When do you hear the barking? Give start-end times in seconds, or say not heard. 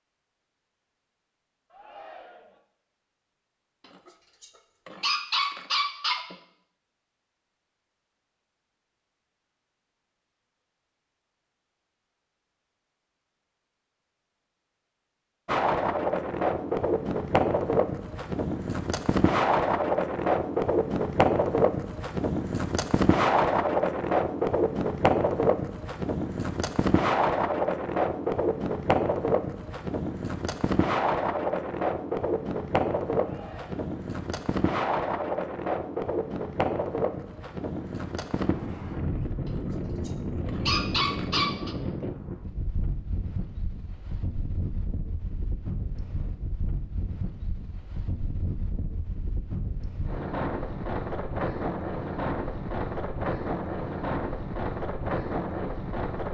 4.0-6.3, 40.0-41.8.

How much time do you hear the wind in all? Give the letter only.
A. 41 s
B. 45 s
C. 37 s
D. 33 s
A.